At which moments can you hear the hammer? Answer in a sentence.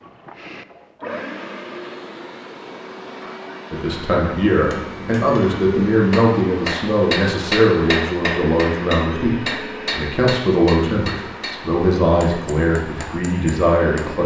You can hear the hammer from 4.5 to 14.1 s.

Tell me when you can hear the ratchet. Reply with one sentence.
The ratchet can't be heard in this clip.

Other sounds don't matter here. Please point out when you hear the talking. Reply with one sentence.
You can hear the talking from 3.7 to 14.2 s.